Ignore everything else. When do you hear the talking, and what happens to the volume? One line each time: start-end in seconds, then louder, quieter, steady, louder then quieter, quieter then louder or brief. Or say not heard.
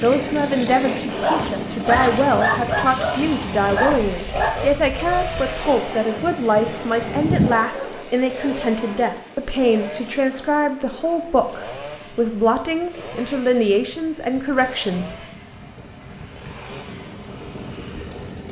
0.0-15.2 steady.